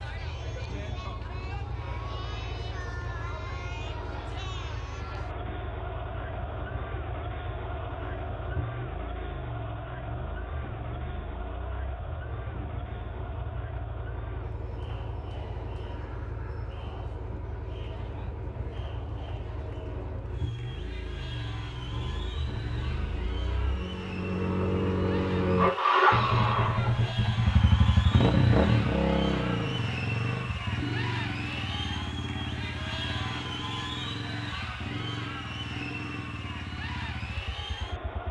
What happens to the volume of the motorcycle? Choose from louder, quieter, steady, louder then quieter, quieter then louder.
louder then quieter.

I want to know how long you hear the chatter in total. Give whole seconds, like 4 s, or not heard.
38 s.